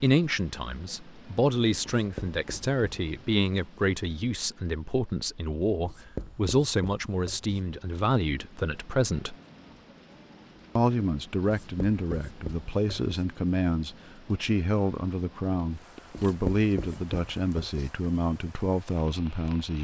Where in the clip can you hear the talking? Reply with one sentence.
The talking can be heard from 0.0 to 9.3 s and from 10.8 to 19.8 s.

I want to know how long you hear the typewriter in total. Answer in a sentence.
You can't hear the typewriter here.